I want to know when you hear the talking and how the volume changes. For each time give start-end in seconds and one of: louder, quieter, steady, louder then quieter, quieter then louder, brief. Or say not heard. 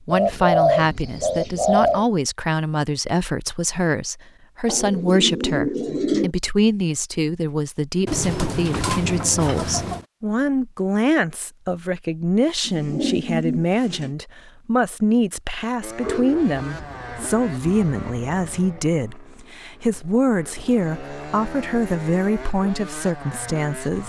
0.1-24.0 steady.